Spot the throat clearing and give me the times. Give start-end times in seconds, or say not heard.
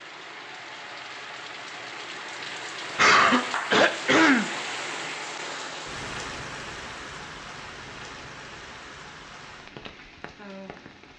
3.0-4.5.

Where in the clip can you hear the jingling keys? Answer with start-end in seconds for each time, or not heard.
not heard.